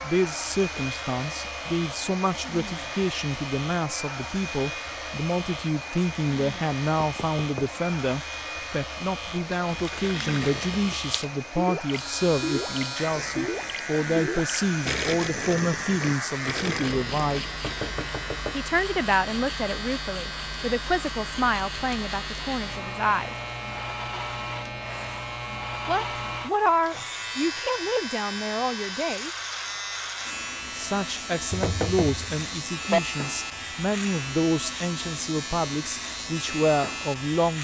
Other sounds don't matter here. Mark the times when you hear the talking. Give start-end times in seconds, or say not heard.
0.0-17.4, 18.5-23.4, 25.9-29.3, 30.7-37.5.